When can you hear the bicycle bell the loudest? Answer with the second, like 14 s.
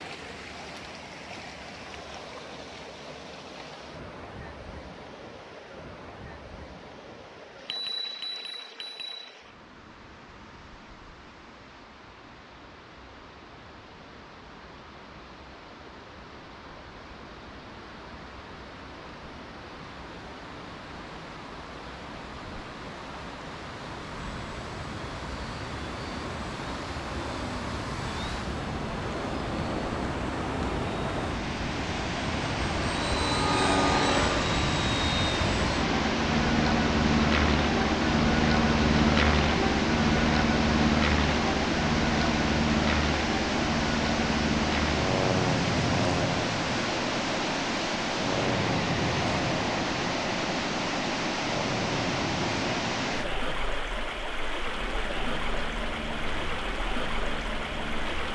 8 s.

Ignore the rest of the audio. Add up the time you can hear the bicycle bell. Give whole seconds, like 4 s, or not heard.
2 s.